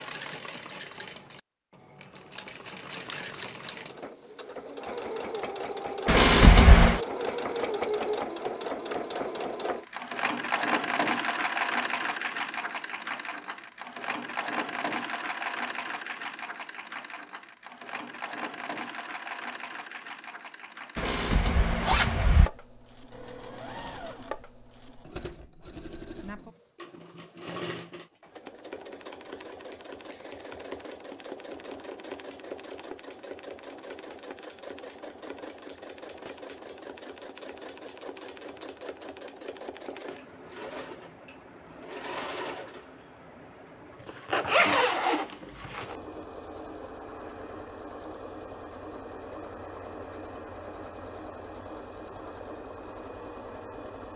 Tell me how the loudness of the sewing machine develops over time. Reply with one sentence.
The loudness of the sewing machine goes down.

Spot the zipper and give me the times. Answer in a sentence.
The zipper can be heard from 6.0 to 7.0 s, from 20.9 to 22.5 s and from 44.0 to 46.0 s.